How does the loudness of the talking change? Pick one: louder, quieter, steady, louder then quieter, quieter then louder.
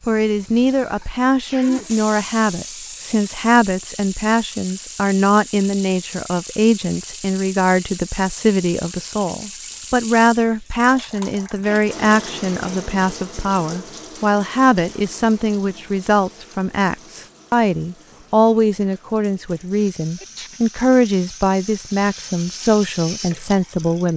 steady.